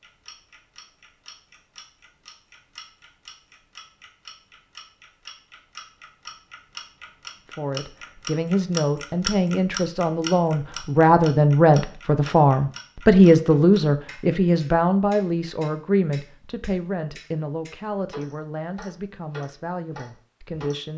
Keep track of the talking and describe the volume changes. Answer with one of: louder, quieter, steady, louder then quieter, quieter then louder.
louder then quieter.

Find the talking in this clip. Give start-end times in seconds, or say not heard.
7.5-20.9.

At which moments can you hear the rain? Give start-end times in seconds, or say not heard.
not heard.